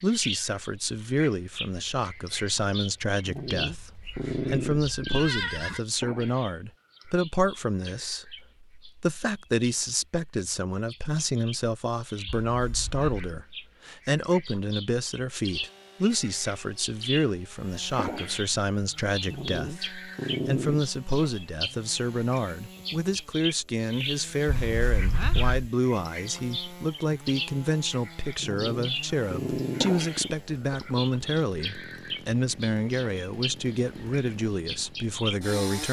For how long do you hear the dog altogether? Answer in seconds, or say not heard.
6 s.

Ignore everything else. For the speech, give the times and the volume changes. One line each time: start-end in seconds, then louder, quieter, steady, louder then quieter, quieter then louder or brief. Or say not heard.
0.0-35.8 steady.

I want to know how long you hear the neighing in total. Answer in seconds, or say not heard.
4 s.